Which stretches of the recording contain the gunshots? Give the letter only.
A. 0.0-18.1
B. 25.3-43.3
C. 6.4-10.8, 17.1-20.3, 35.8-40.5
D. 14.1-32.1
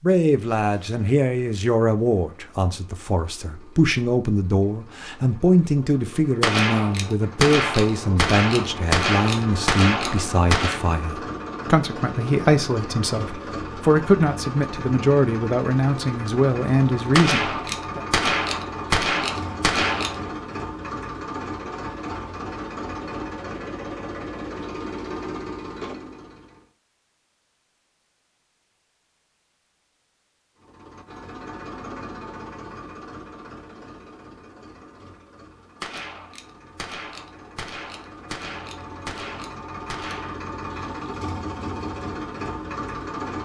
C.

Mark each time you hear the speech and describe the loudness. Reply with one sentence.
You can hear the speech from 0.0 to 18.1 s, at a steady volume.